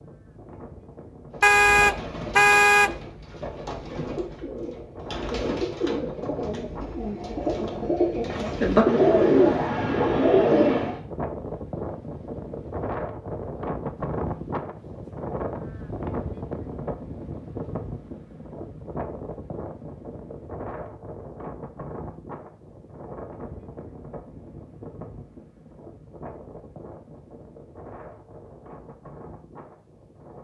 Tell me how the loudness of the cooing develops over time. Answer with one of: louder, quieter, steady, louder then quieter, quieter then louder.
louder.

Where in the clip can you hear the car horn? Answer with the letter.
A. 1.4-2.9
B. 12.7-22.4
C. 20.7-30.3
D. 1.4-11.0
A.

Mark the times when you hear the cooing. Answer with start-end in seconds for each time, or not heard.
1.4-11.0.